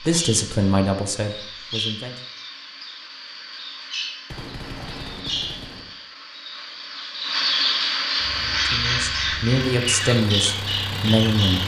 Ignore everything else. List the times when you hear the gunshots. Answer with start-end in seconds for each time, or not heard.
4.3-5.9.